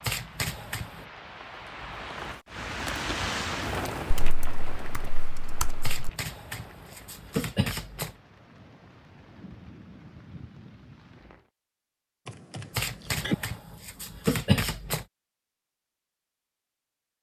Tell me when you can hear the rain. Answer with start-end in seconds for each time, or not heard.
0.0-11.5.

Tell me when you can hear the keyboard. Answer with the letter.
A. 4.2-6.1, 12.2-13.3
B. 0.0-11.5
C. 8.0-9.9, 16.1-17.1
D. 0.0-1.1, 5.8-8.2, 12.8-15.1
A.